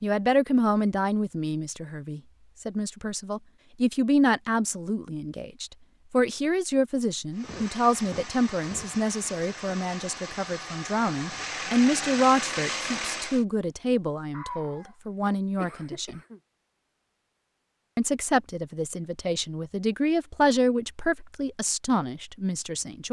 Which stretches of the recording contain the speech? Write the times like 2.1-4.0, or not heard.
0.0-16.2, 17.9-23.0.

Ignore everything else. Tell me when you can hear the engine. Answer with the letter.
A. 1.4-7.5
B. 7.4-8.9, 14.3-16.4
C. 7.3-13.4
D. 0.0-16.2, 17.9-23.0
C.